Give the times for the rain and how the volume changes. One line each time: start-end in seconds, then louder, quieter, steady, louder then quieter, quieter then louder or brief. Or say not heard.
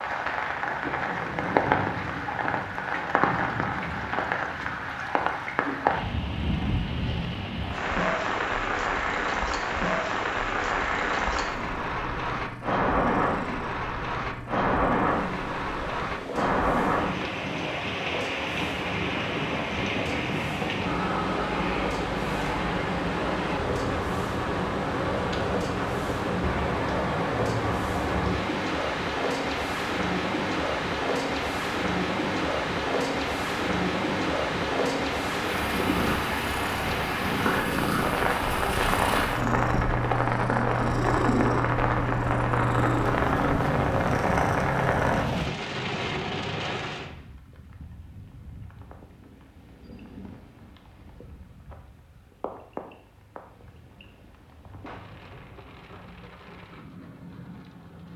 0.0-58.1 quieter.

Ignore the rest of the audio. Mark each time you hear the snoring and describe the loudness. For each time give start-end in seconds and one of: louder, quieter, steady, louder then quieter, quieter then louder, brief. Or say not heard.
not heard.